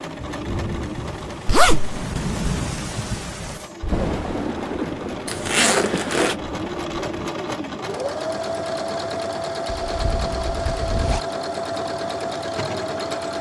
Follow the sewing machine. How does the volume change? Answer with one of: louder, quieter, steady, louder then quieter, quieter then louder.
louder.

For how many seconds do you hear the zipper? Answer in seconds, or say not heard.
3 s.